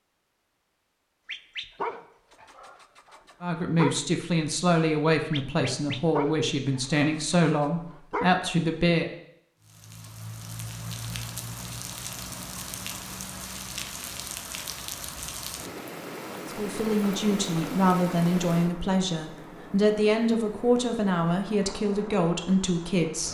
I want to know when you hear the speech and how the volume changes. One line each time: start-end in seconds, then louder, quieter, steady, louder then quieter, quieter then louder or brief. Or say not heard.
3.4-9.1 steady
16.4-23.2 steady.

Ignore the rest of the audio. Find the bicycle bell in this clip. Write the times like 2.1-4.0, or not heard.
not heard.